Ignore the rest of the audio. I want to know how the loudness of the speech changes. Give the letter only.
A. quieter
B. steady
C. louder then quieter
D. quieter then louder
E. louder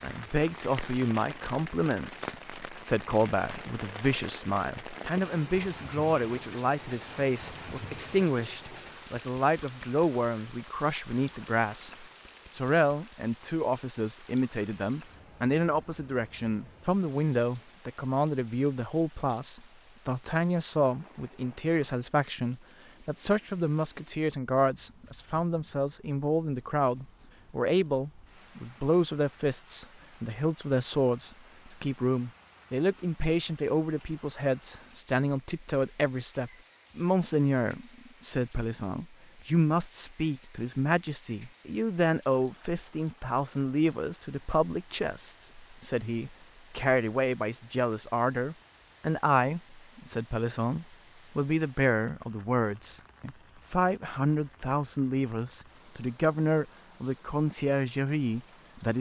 B.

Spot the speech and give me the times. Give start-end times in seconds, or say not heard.
0.0-58.9.